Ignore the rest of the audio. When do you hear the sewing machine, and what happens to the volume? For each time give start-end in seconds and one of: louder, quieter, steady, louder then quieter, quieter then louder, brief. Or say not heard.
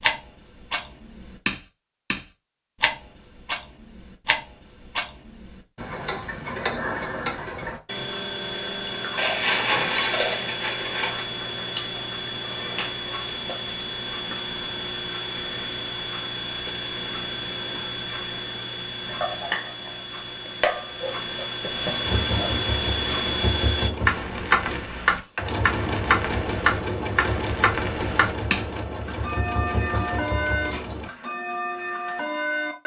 22.1-31.1 steady.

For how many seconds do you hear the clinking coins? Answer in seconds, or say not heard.
2 s.